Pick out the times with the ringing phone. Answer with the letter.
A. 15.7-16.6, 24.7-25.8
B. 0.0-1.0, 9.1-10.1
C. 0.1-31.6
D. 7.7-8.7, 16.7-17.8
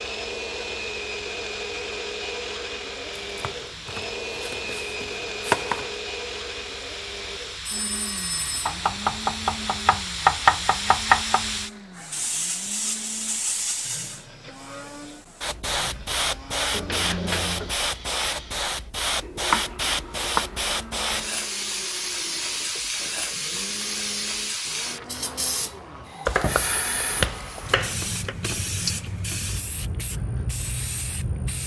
D.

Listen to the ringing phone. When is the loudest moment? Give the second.
17 s.